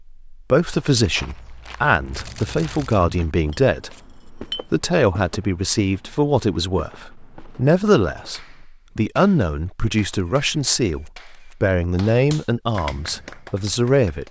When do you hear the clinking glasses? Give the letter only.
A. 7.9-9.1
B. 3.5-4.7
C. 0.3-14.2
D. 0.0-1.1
B.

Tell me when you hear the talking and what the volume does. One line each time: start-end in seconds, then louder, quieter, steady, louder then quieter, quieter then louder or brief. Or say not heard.
0.3-14.2 steady.